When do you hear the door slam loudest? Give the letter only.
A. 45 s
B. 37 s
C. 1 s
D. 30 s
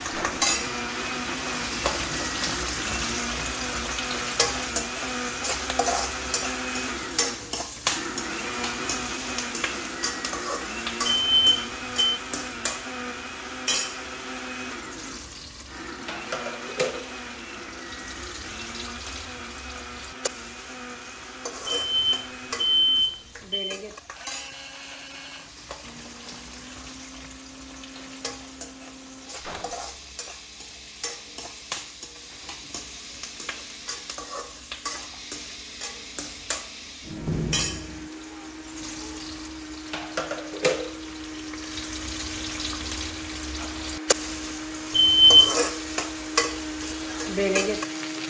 B.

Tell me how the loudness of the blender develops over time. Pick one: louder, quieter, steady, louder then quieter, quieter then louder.
quieter then louder.